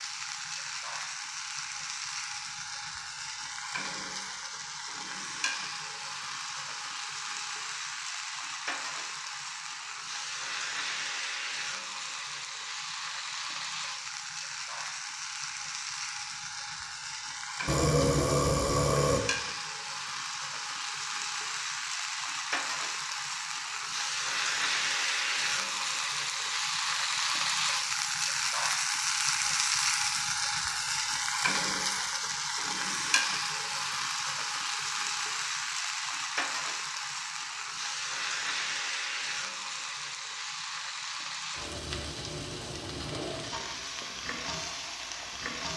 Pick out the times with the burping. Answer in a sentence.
The burping can be heard from 17.6 to 19.2 s.